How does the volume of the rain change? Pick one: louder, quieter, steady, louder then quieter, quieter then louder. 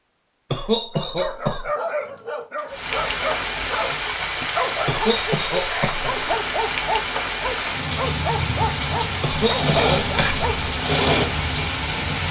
steady.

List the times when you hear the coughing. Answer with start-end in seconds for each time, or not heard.
0.5-1.7, 4.8-6.3, 9.2-10.4.